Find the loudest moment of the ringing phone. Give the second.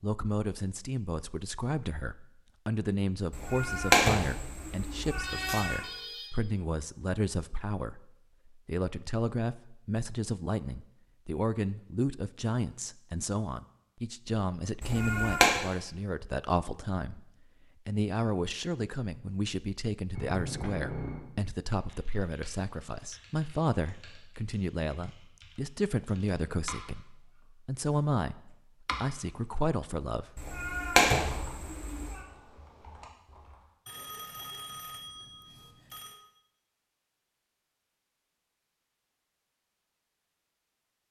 21 s.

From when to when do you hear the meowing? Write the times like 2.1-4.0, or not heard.
3.3-5.8, 14.8-15.6, 30.4-32.2.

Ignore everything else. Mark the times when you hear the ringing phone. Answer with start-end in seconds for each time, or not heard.
5.2-6.4, 20.1-21.2, 33.9-36.2.